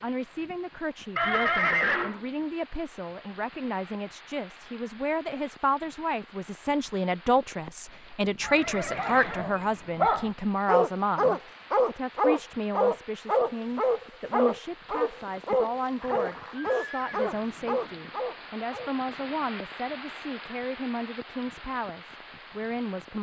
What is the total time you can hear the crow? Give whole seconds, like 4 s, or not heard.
not heard.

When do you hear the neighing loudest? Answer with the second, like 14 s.
2 s.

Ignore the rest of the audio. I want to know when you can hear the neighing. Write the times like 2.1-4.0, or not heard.
1.1-2.2, 8.4-9.4, 15.9-17.3.